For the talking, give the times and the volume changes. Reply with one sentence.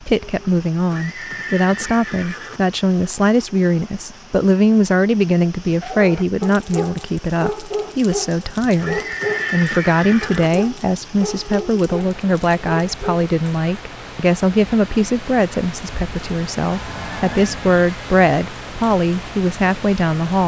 The talking can be heard from 0.0 to 20.4 s, at a steady volume.